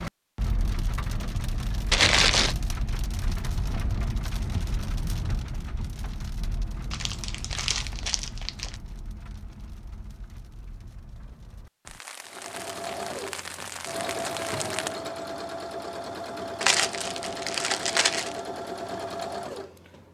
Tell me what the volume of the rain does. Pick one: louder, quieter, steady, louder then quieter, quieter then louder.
quieter then louder.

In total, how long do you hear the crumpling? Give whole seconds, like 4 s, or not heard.
4 s.